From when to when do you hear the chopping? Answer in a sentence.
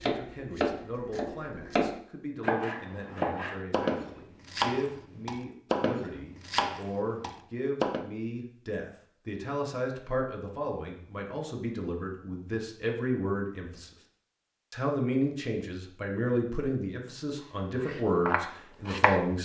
The chopping can be heard from 0.0 to 8.1 s and from 17.9 to 19.2 s.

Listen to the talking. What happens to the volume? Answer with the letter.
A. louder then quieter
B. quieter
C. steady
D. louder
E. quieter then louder
D.